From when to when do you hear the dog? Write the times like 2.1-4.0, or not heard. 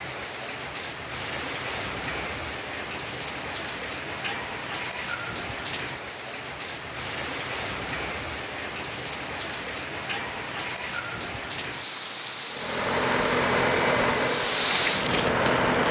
not heard.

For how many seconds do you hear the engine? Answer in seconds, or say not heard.
3 s.